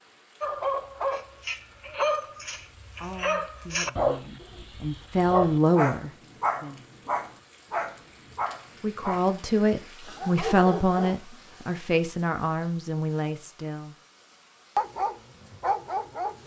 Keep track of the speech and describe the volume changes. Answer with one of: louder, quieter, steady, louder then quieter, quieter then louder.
louder then quieter.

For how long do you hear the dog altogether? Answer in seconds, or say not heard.
12 s.